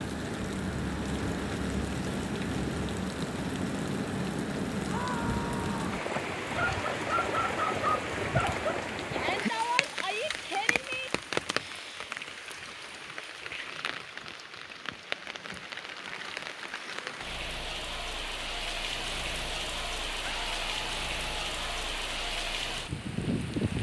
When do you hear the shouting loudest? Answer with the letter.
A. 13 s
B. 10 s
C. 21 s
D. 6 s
B.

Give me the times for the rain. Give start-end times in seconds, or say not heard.
0.0-23.7.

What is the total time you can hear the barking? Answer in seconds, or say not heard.
2 s.